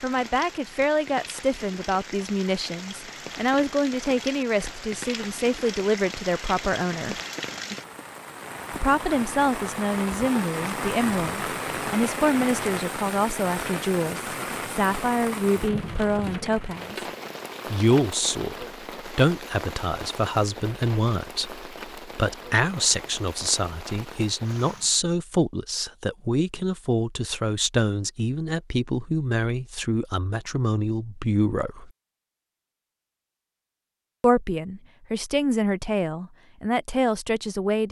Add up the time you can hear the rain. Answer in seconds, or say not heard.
25 s.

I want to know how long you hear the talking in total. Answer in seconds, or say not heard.
33 s.